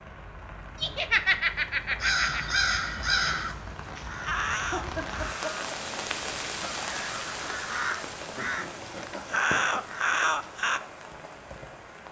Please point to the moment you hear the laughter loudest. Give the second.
1 s.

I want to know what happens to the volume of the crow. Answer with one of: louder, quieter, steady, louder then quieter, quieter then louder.
quieter then louder.